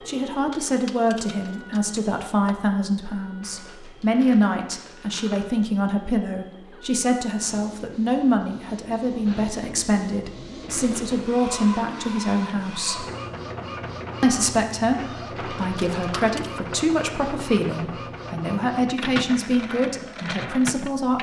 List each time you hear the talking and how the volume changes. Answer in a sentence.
The talking can be heard from 0.1 to 13.1 s, at a steady volume; and from 14.2 to 21.1 s, at a steady volume.